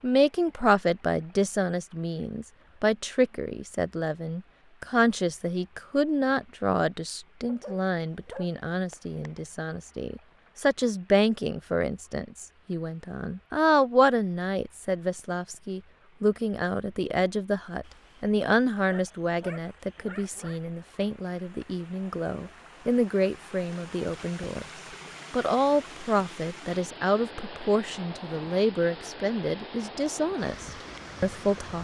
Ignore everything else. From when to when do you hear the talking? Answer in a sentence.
You can hear the talking from 0.0 to 24.6 s and from 25.3 to 31.7 s.